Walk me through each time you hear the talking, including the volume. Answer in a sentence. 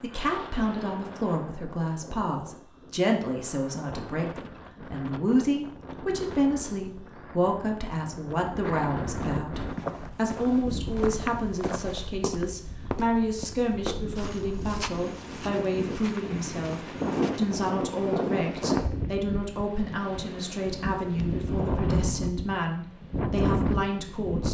You can hear the talking from 0.0 to 24.5 s, at a steady volume.